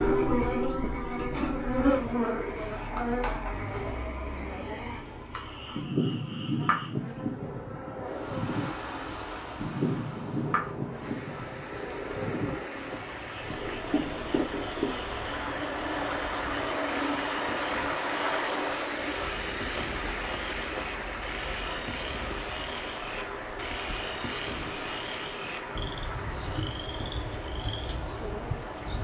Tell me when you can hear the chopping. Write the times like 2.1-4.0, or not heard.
not heard.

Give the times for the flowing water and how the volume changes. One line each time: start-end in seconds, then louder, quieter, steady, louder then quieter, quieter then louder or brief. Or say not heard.
8.0-29.0 louder then quieter.